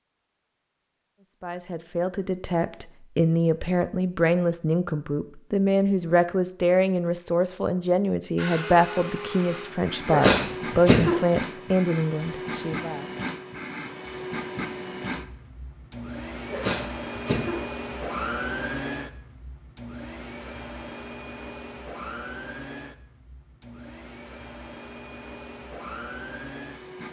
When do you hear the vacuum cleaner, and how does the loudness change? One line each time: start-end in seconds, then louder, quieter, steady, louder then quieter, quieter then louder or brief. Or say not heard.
8.3-27.0 quieter.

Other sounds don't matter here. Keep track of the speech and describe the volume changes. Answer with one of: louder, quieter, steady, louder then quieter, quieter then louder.
steady.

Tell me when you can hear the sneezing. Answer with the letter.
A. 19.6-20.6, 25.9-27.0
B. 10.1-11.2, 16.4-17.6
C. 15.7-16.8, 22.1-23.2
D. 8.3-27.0
B.